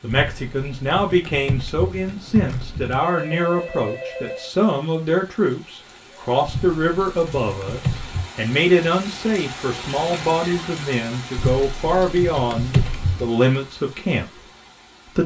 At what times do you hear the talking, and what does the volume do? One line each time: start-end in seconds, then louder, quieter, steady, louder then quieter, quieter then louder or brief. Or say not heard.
0.0-14.4 steady.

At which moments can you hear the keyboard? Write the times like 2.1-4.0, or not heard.
0.1-3.0, 6.5-8.3, 11.3-13.3.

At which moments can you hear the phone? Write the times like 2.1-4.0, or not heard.
3.0-4.5.